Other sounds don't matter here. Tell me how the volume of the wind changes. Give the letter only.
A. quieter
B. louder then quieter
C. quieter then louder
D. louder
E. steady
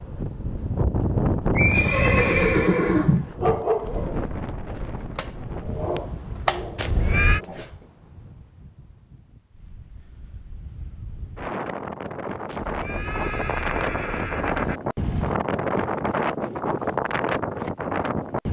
C.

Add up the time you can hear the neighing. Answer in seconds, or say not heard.
5 s.